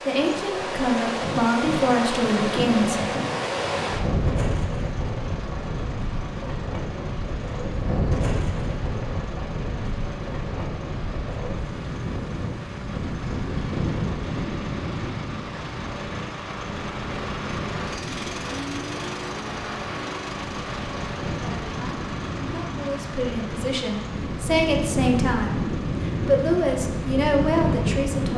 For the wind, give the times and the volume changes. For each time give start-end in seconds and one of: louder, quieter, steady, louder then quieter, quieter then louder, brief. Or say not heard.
0.0-28.3 quieter then louder.